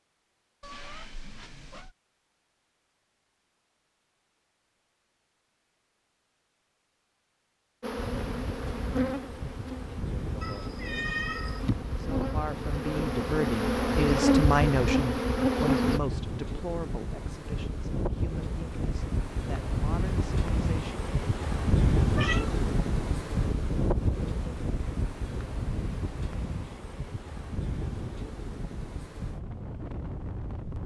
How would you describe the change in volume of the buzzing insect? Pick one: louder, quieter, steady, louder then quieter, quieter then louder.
quieter then louder.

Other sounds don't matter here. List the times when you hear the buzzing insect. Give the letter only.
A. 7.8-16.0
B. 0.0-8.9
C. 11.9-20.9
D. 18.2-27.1
A.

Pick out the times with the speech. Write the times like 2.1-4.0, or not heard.
11.9-20.9.